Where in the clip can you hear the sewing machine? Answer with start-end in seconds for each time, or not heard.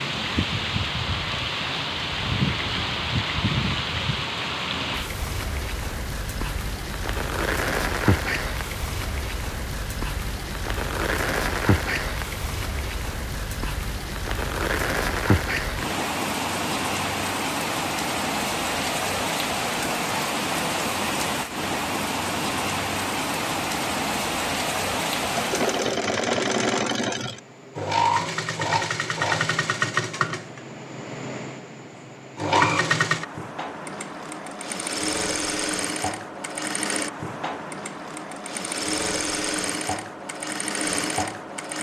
25.2-41.7.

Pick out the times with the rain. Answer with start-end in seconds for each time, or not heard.
0.0-26.0.